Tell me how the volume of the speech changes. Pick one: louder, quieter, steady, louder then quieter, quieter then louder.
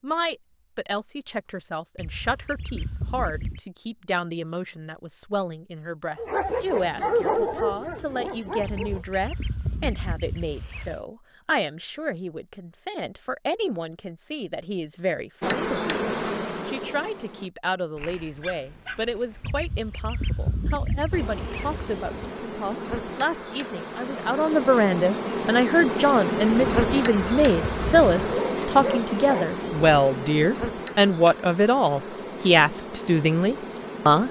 louder.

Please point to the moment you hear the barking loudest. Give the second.
7 s.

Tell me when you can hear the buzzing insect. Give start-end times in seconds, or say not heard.
15.4-17.5, 21.1-34.2.